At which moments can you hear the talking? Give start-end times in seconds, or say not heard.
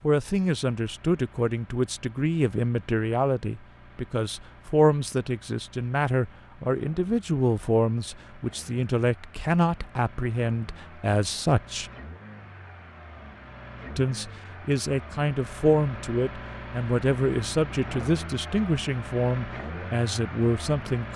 0.0-11.9, 13.9-21.1.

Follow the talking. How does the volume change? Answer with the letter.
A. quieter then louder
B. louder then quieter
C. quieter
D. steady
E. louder
D.